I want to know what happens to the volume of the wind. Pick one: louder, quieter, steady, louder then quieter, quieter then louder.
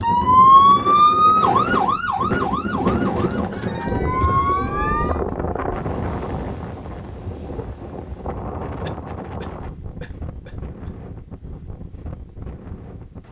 quieter.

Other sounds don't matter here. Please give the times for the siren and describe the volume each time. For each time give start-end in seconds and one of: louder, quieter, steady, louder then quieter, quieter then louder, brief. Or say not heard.
0.0-5.2 quieter then louder.